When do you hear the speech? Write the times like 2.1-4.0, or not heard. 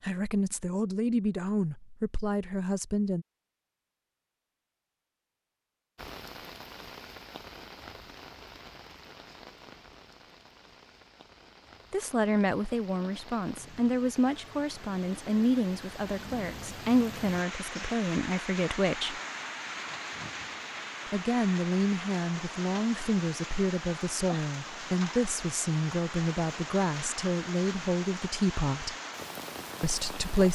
0.0-3.2, 11.9-19.2, 21.1-28.9, 29.8-30.5.